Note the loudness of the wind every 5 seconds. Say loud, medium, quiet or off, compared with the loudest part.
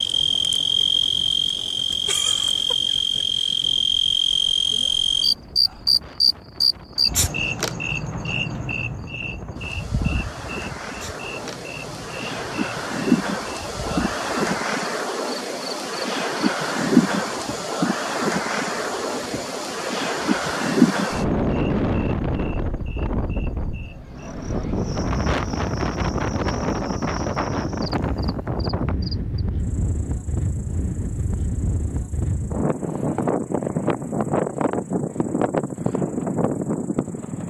quiet, quiet, loud, loud, loud, loud, loud, loud.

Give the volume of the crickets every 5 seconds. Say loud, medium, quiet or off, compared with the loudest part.
loud, loud, quiet, quiet, quiet, quiet, quiet, quiet.